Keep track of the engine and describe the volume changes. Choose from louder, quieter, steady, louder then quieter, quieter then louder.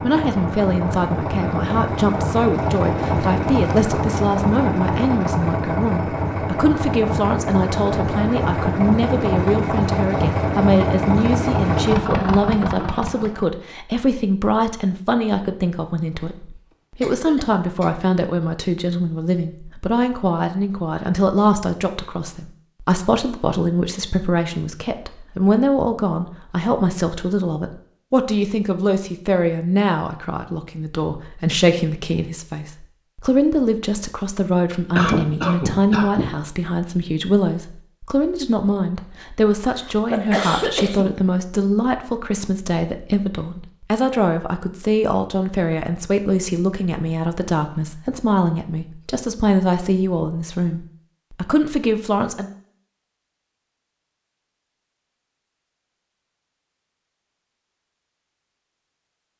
steady.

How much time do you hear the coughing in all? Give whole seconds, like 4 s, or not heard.
4 s.